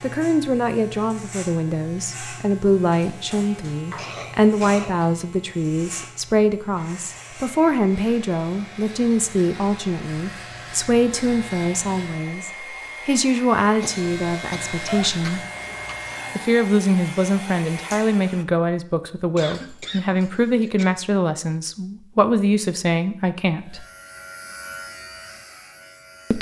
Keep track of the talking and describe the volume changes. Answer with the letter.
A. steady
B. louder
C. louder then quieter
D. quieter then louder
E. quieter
A.